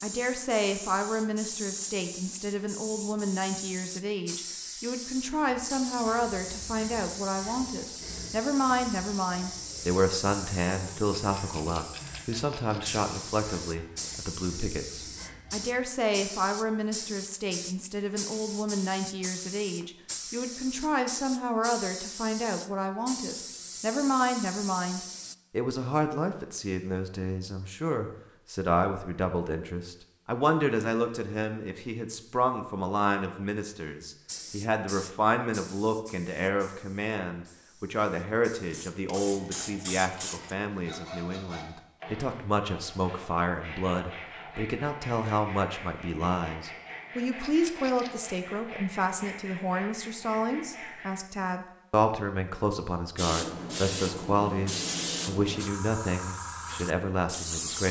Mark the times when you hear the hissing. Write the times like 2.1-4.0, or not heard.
0.0-25.4, 34.2-40.5, 53.1-57.8.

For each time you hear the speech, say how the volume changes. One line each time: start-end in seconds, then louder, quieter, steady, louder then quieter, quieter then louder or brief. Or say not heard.
0.0-57.8 steady.